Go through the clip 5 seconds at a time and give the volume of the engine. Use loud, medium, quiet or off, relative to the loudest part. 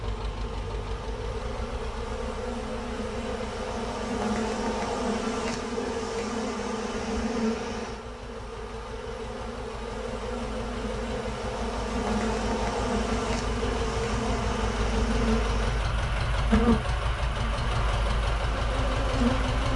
medium, quiet, medium, loud.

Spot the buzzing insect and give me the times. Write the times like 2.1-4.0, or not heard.
0.0-19.7.